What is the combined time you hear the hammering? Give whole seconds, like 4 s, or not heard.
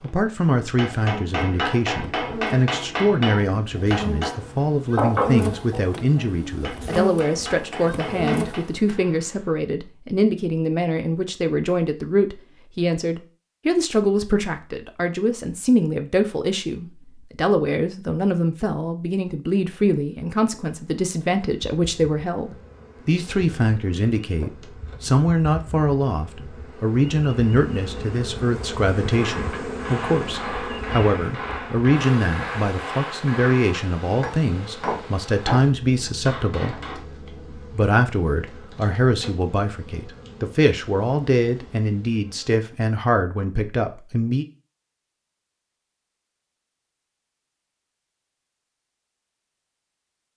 16 s.